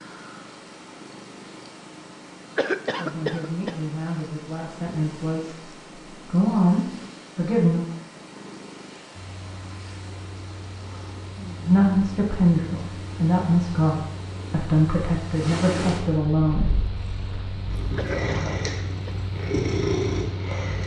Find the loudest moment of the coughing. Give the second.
3 s.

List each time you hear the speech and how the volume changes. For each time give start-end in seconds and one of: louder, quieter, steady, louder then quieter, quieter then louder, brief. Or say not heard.
3.0-7.8 louder
11.7-16.7 steady.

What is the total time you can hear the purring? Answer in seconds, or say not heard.
21 s.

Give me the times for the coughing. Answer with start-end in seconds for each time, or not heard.
2.5-3.8, 17.9-19.2.